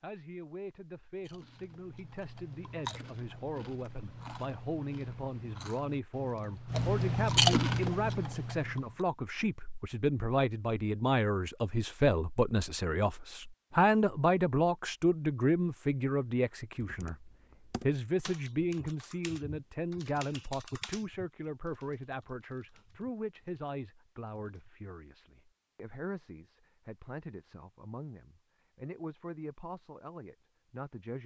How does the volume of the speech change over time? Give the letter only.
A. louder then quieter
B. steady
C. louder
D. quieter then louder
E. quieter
A.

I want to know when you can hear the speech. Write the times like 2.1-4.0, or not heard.
0.0-31.2.